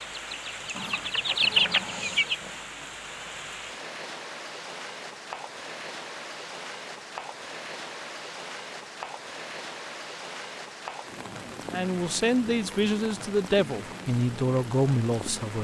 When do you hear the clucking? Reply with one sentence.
The clucking can be heard from 0.0 to 2.4 s.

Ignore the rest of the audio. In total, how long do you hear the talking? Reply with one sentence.
The talking can be heard for 4 seconds in total.